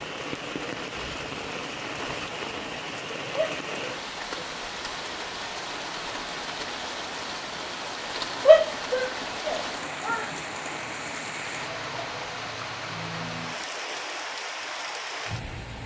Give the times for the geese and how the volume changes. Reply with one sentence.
You can't hear the geese here.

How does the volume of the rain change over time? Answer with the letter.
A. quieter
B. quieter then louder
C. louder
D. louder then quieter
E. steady
E.